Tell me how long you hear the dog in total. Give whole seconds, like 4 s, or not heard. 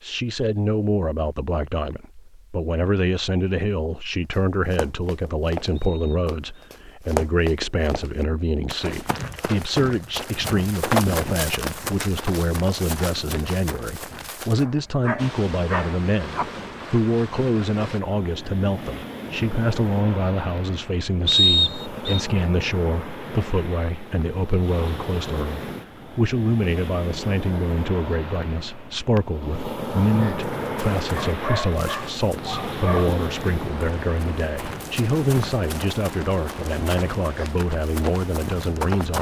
4 s.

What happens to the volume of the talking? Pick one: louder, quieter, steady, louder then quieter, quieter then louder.
steady.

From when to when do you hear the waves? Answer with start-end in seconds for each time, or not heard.
15.2-39.0.